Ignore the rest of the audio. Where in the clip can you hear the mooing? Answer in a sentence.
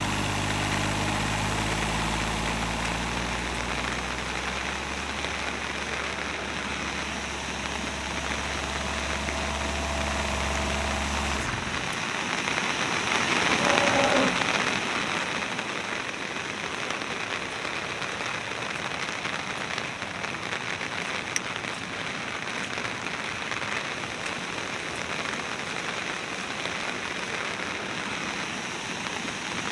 The mooing can be heard from 13.5 to 14.4 s.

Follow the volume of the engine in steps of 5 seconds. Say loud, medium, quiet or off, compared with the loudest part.
loud, medium, loud, off, off, off.